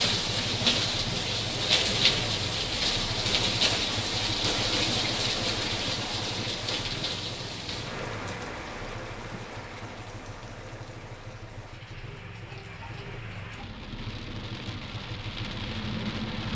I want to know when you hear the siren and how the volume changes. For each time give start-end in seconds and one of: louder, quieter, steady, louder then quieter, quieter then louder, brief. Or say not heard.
not heard.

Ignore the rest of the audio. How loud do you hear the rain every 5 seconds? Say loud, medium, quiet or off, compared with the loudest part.
loud, medium, quiet, medium.